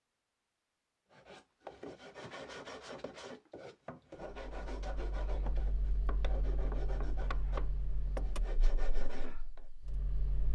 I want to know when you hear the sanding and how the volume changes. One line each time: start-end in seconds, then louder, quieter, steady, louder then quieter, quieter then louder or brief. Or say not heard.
1.1-9.7 steady.